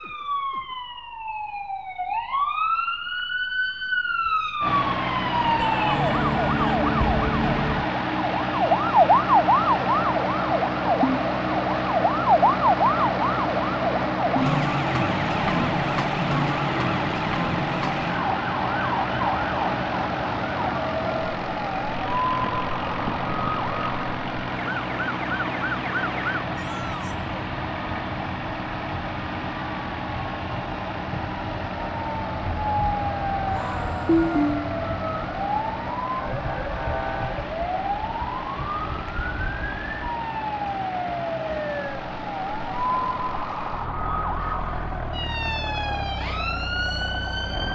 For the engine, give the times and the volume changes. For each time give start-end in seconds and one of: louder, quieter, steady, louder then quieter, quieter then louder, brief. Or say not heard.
4.6-47.6 quieter.